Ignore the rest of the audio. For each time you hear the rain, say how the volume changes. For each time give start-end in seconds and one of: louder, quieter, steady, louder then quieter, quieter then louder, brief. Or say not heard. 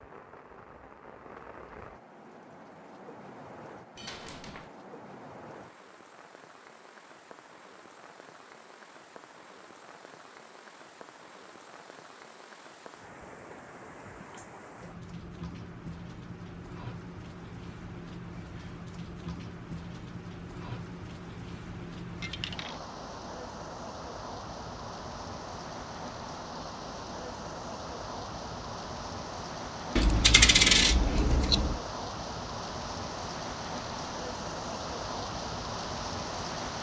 0.0-36.7 louder.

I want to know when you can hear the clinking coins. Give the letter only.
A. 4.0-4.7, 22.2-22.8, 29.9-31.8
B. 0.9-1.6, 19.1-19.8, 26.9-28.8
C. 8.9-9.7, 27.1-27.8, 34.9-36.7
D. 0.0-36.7
A.